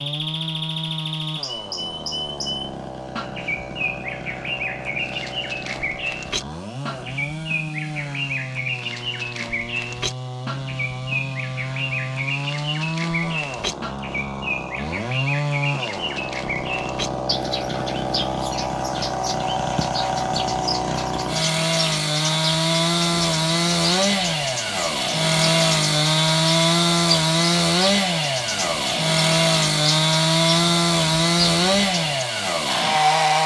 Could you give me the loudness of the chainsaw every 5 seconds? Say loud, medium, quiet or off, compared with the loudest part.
quiet, quiet, medium, medium, loud, loud, loud.